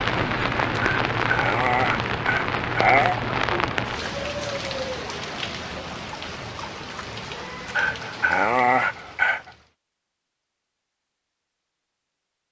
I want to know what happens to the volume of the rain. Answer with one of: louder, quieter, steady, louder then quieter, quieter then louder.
quieter.